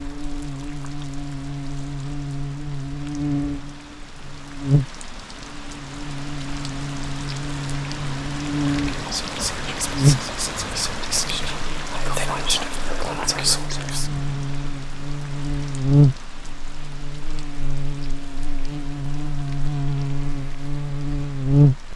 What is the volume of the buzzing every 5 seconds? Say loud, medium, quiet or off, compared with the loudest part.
medium, medium, medium, loud, loud.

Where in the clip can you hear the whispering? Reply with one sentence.
You can hear the whispering from 8.7 to 14.1 s.